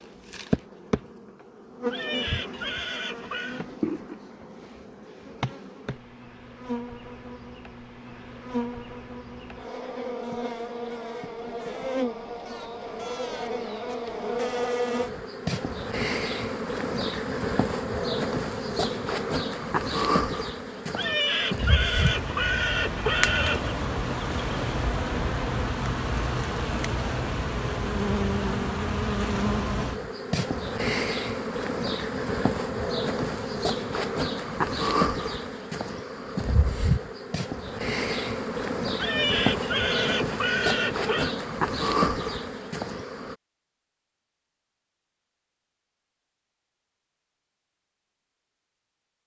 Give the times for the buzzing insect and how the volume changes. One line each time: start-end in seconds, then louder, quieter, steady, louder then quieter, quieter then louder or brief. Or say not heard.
0.0-43.4 louder.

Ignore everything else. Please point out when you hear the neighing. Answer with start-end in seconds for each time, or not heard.
1.9-3.6, 20.9-23.8, 39.0-41.4.